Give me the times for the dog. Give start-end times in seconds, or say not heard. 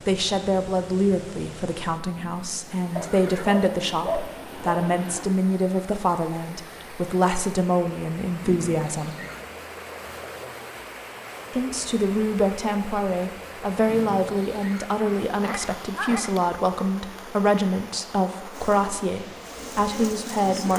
3.0-5.4, 15.1-16.5.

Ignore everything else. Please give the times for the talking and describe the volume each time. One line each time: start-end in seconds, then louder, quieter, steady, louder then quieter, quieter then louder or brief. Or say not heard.
0.1-9.2 steady
11.5-20.7 steady.